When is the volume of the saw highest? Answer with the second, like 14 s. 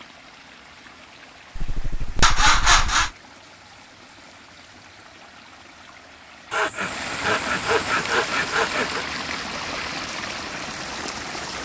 3 s.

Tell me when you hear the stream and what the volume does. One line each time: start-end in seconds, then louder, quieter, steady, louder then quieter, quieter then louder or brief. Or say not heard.
0.0-11.6 louder.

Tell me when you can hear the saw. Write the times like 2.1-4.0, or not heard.
1.6-3.1, 6.5-9.1.